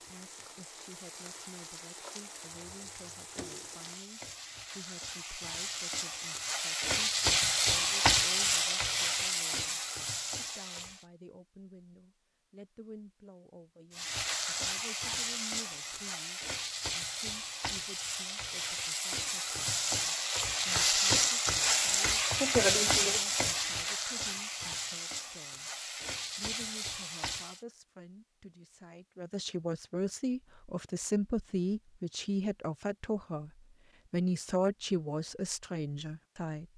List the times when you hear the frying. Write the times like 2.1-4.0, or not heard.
0.0-11.1, 13.9-27.6.